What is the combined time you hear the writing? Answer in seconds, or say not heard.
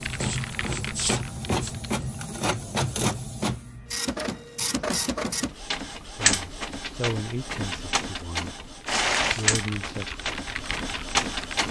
2 s.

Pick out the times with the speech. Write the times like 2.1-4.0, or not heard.
6.2-8.6, 9.3-10.2.